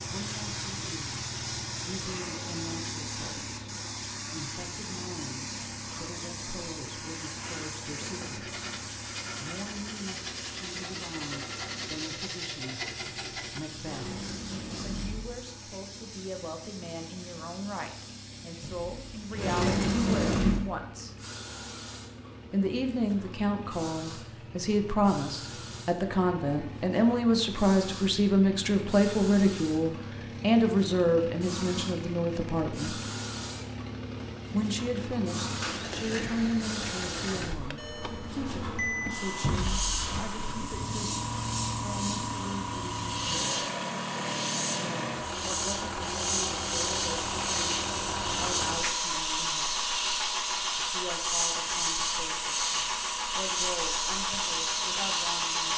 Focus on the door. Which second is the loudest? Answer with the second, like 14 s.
20 s.